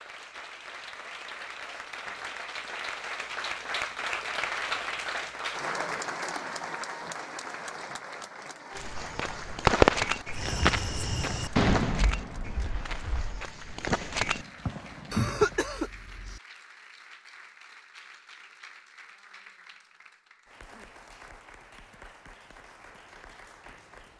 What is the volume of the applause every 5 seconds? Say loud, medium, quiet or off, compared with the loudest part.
loud, loud, quiet, quiet, quiet.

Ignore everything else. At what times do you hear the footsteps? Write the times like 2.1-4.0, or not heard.
8.7-15.6.